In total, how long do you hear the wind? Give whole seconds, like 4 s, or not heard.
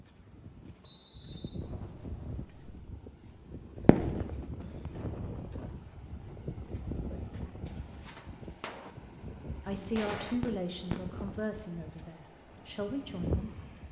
14 s.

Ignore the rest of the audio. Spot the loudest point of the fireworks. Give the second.
4 s.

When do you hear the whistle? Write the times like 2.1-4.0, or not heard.
0.8-1.6.